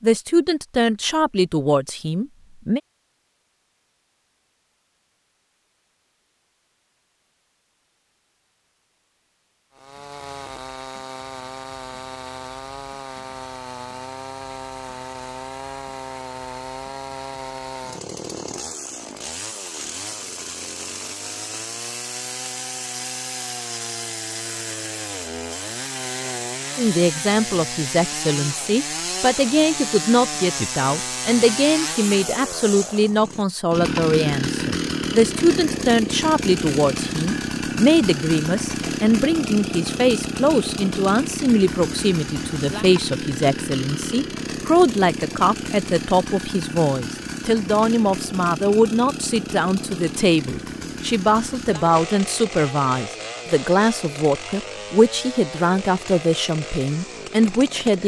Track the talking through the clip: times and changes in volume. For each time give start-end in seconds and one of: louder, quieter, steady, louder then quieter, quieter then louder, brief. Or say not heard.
0.0-2.8 brief
26.8-58.0 steady.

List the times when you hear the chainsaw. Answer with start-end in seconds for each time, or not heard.
9.7-58.0.